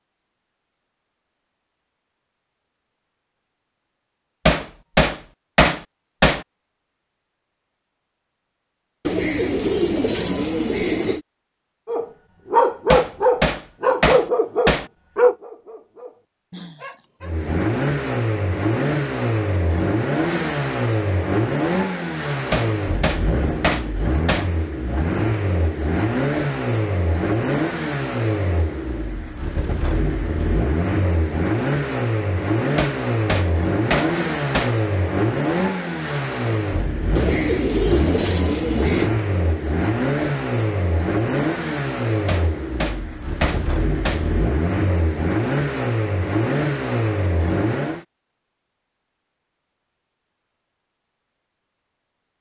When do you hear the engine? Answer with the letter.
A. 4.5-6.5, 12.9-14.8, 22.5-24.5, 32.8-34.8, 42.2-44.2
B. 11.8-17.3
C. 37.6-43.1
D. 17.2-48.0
D.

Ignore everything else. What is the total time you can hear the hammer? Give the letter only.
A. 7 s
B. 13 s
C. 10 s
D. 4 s
C.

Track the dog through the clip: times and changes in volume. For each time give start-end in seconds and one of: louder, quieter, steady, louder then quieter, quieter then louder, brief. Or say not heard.
11.8-17.3 quieter.